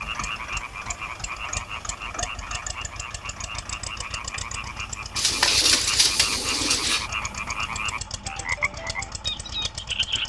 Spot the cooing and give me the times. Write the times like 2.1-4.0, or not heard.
5.2-7.1.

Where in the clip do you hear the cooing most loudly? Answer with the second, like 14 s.
6 s.